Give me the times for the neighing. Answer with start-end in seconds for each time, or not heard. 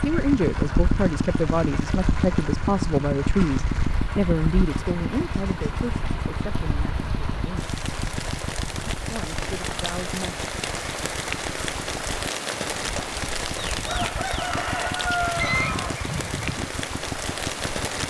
15.0-15.8.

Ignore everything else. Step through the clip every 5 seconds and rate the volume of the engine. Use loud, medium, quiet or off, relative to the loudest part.
loud, medium, quiet, medium.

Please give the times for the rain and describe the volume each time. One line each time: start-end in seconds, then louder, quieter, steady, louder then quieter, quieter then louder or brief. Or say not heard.
0.0-18.0 louder.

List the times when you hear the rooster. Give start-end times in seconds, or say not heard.
13.6-16.6.